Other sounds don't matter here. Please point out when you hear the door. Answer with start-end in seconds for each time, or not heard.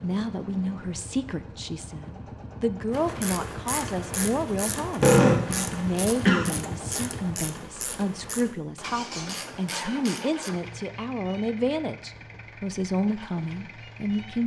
not heard.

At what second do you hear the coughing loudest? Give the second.
5 s.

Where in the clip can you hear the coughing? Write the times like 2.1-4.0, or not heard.
5.0-6.5.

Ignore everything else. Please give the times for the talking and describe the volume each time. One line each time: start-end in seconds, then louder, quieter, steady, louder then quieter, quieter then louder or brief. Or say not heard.
0.0-14.4 steady.